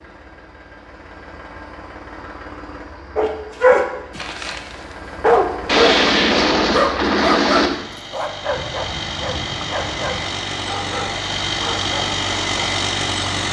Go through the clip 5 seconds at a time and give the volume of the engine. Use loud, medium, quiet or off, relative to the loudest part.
quiet, medium, loud.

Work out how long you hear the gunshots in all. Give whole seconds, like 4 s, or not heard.
2 s.